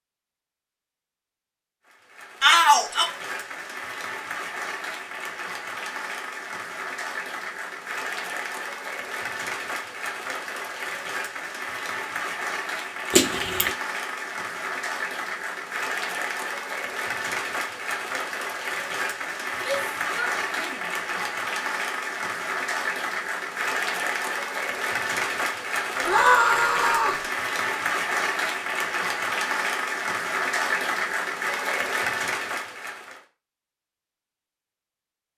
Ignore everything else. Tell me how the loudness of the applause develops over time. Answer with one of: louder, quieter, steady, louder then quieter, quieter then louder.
louder.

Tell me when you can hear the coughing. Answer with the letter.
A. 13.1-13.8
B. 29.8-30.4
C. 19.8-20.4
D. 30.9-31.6
A.